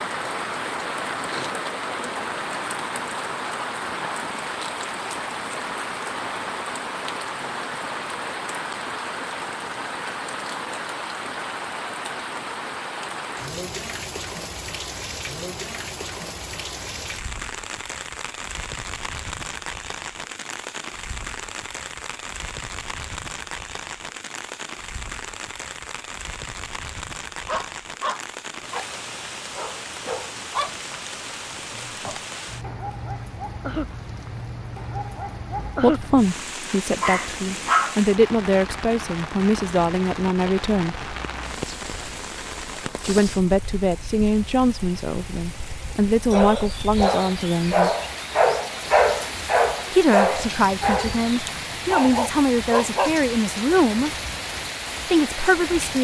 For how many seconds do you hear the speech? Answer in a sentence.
The speech can be heard for 15 seconds in total.